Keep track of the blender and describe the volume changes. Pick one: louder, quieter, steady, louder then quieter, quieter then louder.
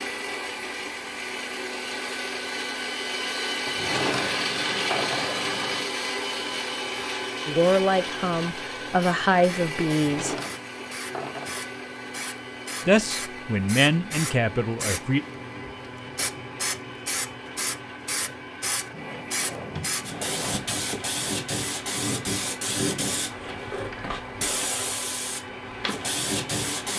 quieter.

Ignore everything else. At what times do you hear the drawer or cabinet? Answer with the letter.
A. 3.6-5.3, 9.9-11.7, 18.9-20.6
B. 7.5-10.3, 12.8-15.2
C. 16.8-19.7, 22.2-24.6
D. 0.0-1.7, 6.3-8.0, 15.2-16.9
A.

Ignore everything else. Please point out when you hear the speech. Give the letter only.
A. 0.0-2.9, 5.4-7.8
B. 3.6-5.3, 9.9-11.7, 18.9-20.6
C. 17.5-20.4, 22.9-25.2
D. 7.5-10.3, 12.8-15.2
D.